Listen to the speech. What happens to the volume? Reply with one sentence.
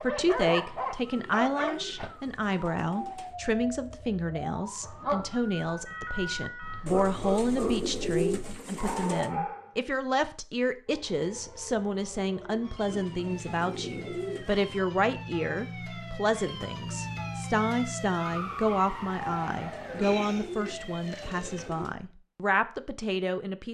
The loudness of the speech stays about the same.